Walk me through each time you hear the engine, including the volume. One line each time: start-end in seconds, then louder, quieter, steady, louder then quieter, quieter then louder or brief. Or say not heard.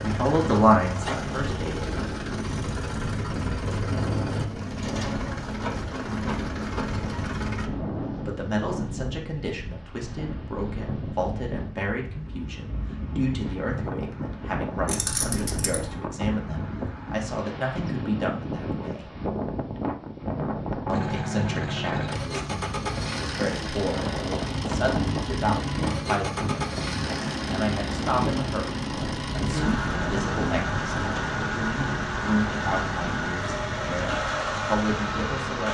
0.0-7.7 steady
20.9-35.6 steady.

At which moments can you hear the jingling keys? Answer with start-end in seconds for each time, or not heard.
14.8-15.9.